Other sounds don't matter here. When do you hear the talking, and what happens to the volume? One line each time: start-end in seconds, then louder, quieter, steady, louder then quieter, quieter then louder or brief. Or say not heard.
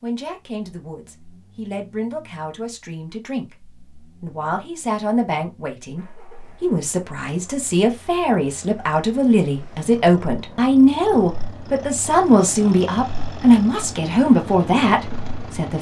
0.0-15.7 louder.